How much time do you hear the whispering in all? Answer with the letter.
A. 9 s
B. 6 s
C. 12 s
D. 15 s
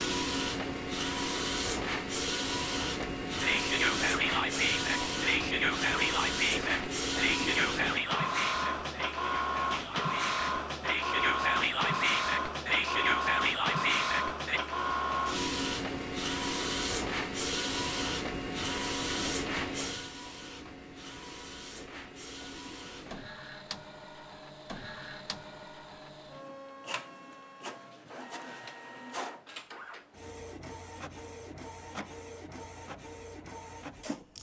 C.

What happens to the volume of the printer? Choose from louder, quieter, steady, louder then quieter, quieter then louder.
quieter.